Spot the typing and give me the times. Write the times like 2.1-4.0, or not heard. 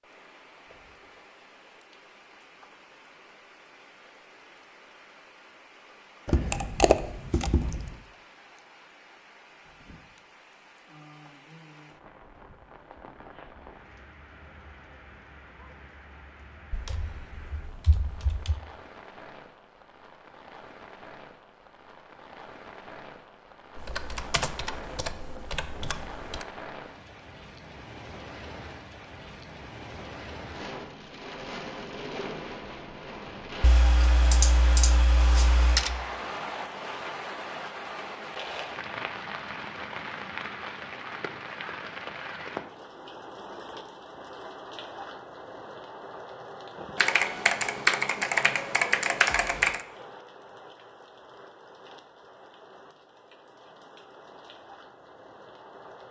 6.2-8.0, 16.7-18.6, 23.8-26.4, 33.6-35.9, 47.0-49.8.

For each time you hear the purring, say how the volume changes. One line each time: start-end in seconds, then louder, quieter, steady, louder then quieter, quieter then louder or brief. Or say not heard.
not heard.